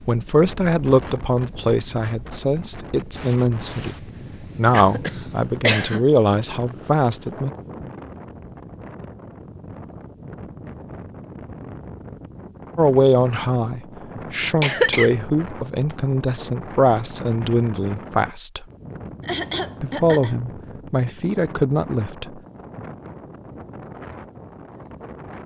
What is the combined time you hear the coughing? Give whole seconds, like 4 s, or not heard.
3 s.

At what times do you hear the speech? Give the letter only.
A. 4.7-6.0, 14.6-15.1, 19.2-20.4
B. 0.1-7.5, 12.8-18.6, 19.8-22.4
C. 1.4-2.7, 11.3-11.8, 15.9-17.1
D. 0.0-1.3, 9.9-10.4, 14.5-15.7
B.